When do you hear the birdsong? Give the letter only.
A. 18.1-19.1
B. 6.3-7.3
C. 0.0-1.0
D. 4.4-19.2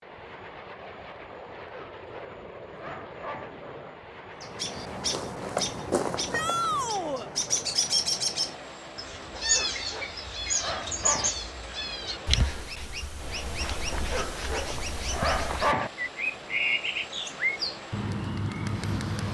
D.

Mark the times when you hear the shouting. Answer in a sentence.
The shouting can be heard from 6.3 to 7.3 s.